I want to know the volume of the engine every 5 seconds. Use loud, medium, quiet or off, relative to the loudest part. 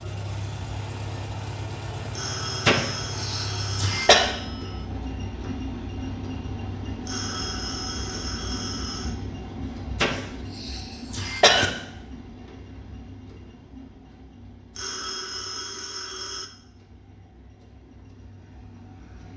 loud, loud, medium, quiet.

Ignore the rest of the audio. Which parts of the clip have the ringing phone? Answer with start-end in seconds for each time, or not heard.
2.1-4.8, 7.0-9.2, 14.8-16.5.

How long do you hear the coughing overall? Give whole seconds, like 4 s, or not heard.
3 s.